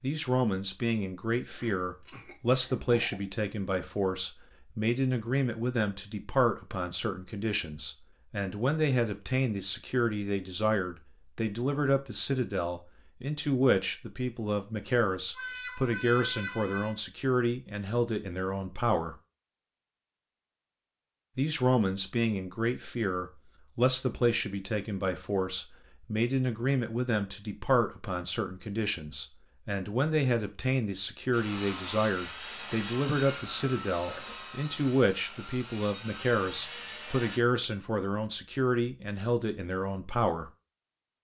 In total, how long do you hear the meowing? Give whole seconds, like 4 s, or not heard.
2 s.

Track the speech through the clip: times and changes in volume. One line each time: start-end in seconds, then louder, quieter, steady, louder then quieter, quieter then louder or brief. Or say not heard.
0.0-19.1 steady
21.4-40.5 steady.